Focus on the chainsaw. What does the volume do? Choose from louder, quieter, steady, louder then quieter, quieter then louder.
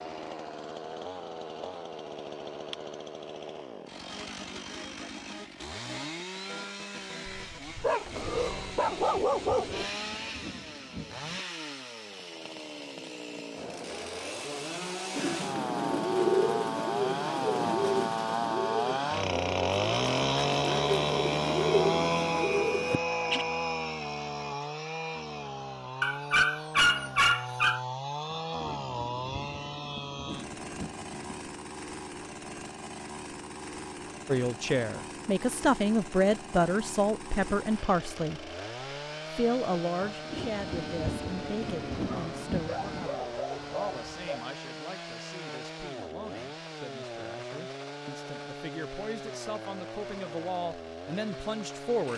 louder then quieter.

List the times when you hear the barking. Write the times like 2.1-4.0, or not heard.
7.2-9.8, 26.0-27.8, 41.6-44.5.